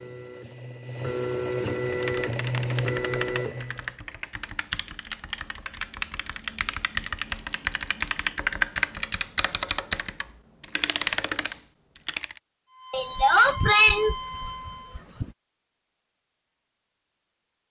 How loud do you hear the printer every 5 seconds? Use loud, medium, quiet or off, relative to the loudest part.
loud, off, medium, off.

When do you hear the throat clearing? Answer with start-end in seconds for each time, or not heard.
12.9-15.2.